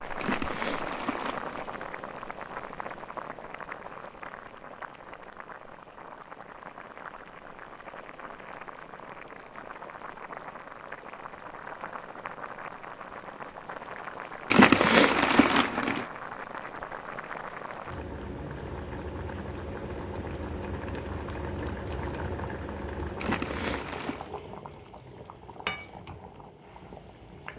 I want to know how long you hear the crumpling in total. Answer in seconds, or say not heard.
4 s.